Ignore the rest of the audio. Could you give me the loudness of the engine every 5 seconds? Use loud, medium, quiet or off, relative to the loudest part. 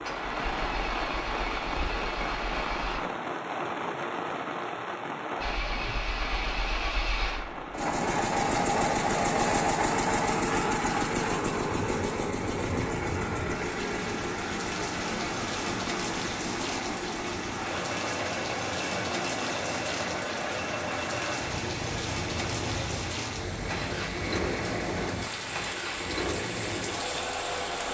medium, loud, loud, medium, medium, medium.